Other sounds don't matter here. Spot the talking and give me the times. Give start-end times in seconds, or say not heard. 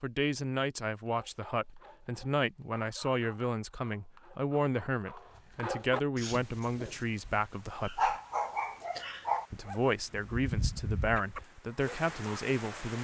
0.0-8.1, 9.5-12.9.